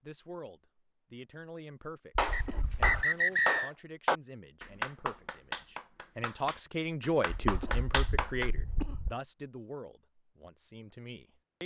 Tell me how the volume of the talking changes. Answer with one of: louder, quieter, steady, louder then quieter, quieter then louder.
louder then quieter.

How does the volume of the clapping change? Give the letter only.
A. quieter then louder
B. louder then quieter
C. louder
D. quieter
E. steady
A.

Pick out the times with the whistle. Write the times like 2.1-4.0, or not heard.
2.3-3.7.